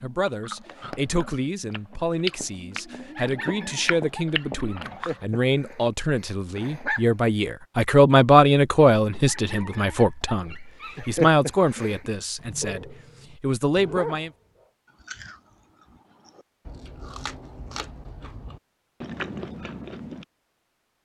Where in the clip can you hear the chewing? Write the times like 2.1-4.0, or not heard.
0.2-5.2, 15.0-20.2.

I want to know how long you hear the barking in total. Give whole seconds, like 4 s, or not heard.
9 s.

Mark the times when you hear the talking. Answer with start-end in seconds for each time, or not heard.
0.0-14.3.